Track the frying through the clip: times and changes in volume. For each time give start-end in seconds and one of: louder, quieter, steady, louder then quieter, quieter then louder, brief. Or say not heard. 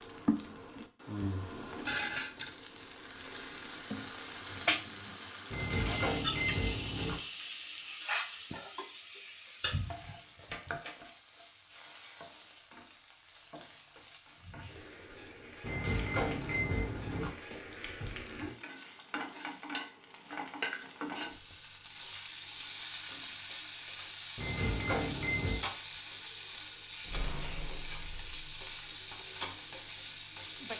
0.0-30.7 quieter then louder.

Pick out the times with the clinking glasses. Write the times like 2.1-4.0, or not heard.
5.5-7.2, 15.7-17.3, 24.4-25.6.